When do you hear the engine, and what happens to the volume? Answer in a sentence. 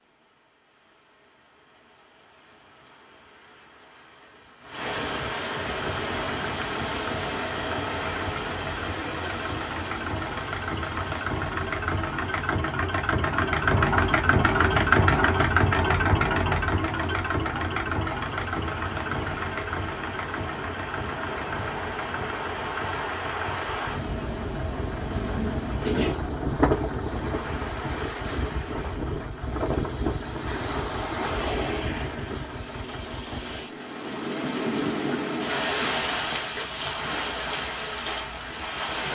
The engine can be heard from 5.8 to 33.7 s, getting louder then quieter.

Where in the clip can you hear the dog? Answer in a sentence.
The dog can't be heard in this clip.